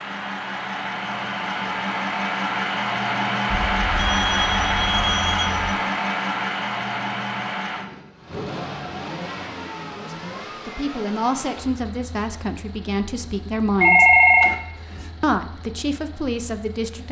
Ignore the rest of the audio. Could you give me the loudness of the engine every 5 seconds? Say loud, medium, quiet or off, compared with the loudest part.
loud, loud, quiet, quiet.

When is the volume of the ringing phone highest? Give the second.
14 s.